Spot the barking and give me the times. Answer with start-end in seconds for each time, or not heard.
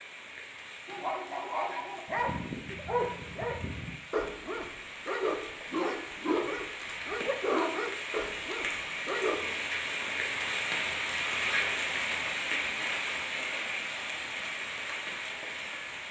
0.8-9.4.